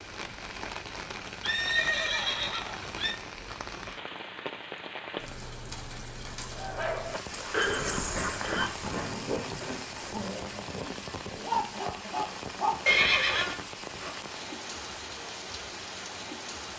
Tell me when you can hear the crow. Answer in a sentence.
You can't hear the crow here.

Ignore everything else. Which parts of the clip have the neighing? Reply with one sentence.
The neighing can be heard from 1.4 to 3.1 s, from 7.5 to 8.7 s and from 12.8 to 13.6 s.